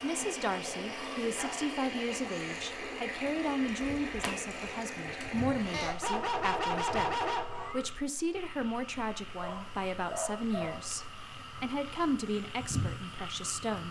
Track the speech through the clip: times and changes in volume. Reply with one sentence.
The speech can be heard from 0.0 to 13.8 s, at a steady volume.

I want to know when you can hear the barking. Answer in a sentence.
The barking can be heard from 1.4 to 2.6 s, from 5.7 to 7.8 s and from 9.4 to 10.8 s.